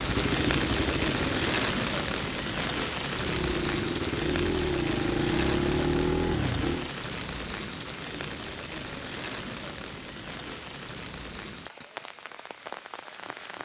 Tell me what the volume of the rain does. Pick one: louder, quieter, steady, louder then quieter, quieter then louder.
quieter.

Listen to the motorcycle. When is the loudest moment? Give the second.
6 s.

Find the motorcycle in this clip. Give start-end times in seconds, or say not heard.
0.0-1.6, 3.1-7.0.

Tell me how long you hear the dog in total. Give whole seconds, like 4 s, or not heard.
not heard.